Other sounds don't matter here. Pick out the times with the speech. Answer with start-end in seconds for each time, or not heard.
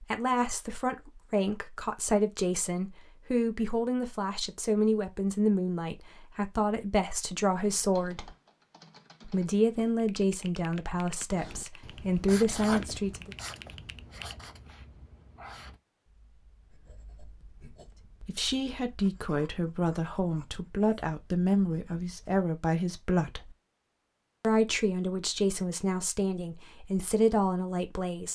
0.0-8.3, 9.2-13.3, 18.2-23.6, 24.4-28.3.